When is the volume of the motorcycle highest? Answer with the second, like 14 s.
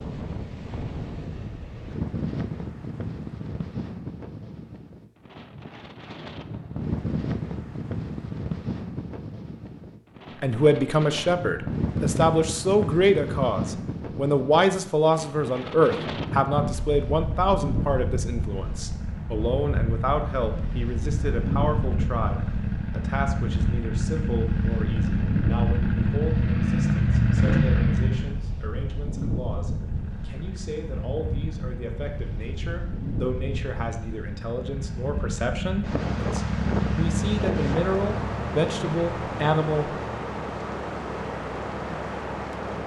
27 s.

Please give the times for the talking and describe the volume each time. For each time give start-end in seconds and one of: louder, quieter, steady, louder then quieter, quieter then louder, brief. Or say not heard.
10.4-39.9 quieter then louder.